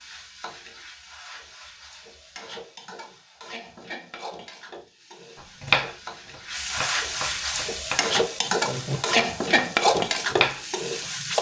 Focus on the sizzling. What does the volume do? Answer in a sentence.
The loudness of the sizzling goes up.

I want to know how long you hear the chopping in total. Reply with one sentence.
The chopping can be heard for 6 seconds in total.